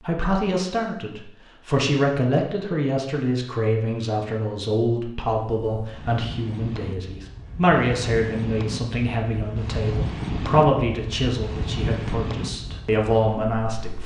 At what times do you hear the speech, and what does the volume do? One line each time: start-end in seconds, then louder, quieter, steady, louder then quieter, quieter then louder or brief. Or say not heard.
0.0-14.0 steady.